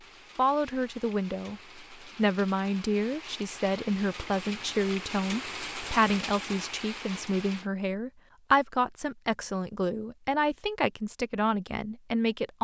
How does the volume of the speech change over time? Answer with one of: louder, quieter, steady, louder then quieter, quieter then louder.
steady.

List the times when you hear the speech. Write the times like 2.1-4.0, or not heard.
0.3-12.5.